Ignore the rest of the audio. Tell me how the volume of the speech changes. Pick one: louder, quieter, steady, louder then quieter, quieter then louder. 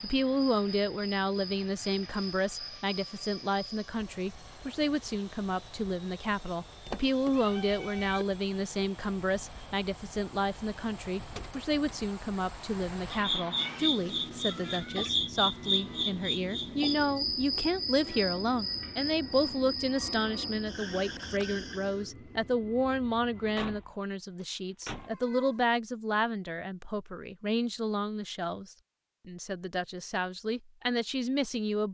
steady.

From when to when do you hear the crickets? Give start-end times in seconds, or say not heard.
0.0-22.1.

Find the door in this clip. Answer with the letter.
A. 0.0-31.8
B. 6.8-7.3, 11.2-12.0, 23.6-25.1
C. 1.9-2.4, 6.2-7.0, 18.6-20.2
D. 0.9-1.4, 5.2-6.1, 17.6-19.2
B.